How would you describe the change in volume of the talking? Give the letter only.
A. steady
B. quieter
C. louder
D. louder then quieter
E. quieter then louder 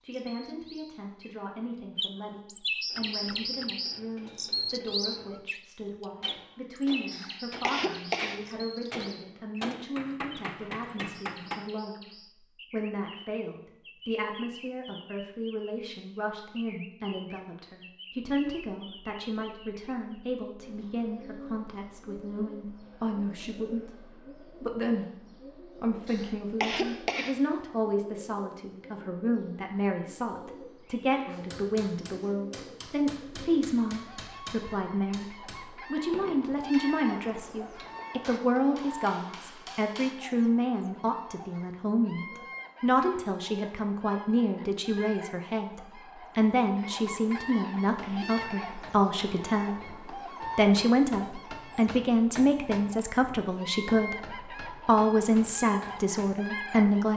C.